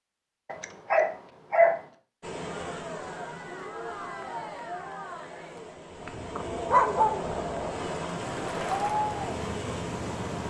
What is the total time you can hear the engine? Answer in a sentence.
The engine can be heard for 2 seconds in total.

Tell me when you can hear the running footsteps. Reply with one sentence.
The running footsteps can't be heard in this clip.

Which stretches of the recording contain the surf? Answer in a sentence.
You can hear the surf from 2.2 to 10.4 s.